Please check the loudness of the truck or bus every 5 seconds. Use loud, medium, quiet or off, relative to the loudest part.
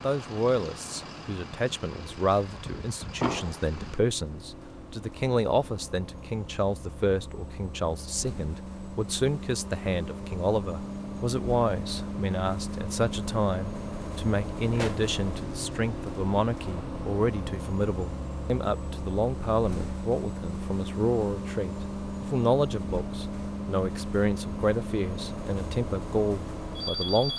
medium, medium, loud, loud, loud, loud.